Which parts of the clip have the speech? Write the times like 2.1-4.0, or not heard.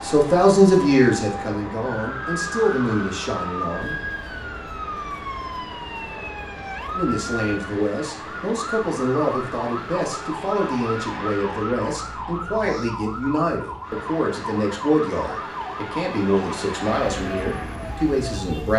0.0-4.0, 6.9-18.7.